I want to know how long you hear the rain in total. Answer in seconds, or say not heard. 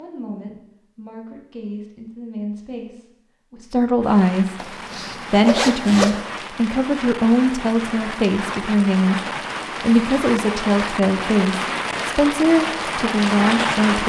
10 s.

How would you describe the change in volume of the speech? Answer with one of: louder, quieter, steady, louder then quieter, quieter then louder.
louder.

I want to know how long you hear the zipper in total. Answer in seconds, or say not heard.
2 s.